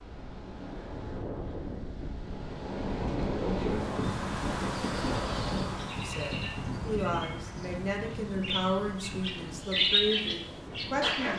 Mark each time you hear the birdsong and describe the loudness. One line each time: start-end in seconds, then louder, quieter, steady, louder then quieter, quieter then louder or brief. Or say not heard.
4.9-11.3 louder.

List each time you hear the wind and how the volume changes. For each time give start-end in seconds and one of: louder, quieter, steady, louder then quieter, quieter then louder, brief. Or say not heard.
0.0-11.3 louder then quieter.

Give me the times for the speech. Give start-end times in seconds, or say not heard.
6.0-11.3.